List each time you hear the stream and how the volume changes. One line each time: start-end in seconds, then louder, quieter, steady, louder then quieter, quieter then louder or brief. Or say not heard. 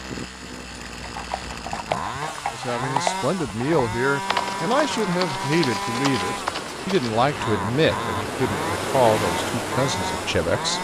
4.2-10.7 louder.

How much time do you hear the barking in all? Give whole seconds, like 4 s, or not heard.
not heard.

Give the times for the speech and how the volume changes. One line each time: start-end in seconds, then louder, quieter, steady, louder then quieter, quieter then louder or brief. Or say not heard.
2.5-10.7 steady.